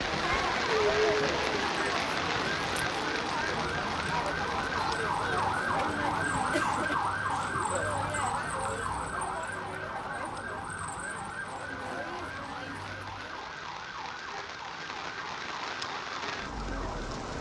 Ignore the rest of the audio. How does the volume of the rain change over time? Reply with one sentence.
The loudness of the rain goes down, then up.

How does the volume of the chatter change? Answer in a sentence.
The loudness of the chatter goes down.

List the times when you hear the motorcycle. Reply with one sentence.
You can't hear the motorcycle here.